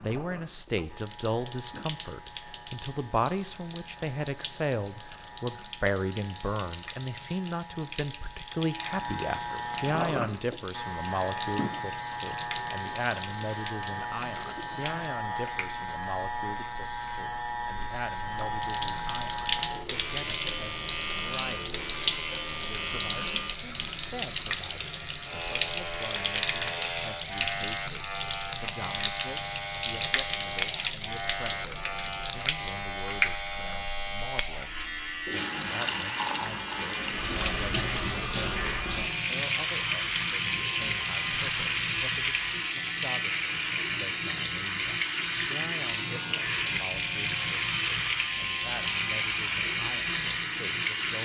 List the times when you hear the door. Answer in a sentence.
The door can't be heard in this clip.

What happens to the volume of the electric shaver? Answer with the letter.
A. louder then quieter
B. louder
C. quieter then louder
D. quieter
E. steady
B.